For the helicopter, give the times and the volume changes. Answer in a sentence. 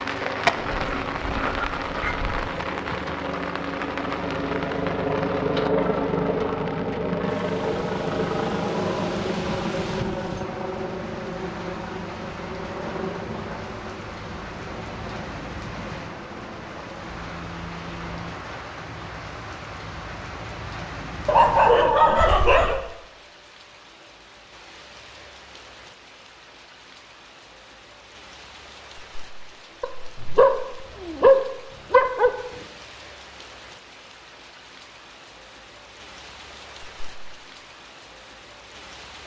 The helicopter can be heard from 0.0 to 18.3 s, getting louder then quieter.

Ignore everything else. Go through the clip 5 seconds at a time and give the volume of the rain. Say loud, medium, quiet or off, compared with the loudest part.
loud, medium, medium, medium, medium, quiet, quiet, quiet.